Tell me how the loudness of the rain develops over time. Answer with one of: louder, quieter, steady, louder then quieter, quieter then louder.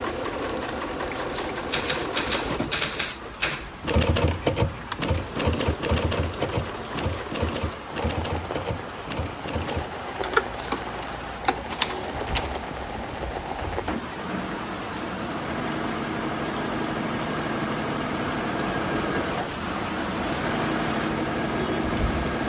louder.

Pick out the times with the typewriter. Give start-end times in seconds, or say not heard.
1.1-12.6.